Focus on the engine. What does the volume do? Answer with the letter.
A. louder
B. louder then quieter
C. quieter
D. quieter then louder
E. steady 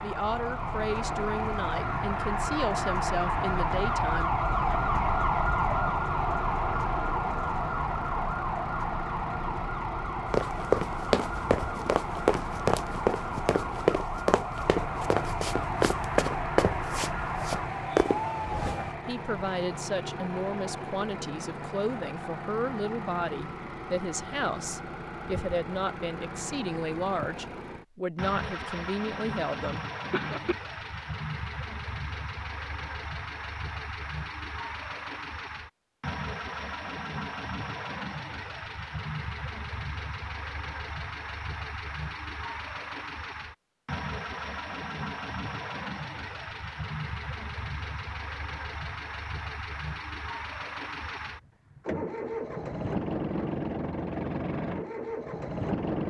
E.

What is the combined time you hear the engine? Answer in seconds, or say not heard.
56 s.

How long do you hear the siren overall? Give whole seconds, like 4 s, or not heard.
19 s.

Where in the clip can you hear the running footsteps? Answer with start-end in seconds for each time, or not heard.
10.3-18.2.